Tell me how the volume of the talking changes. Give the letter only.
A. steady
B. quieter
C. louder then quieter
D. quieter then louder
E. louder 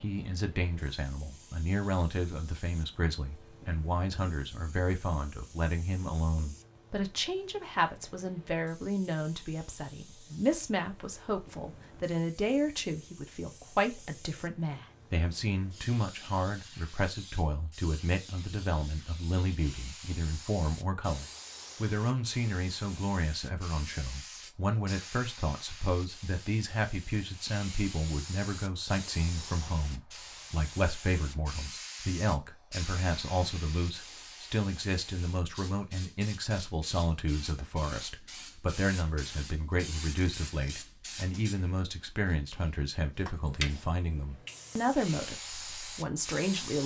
A.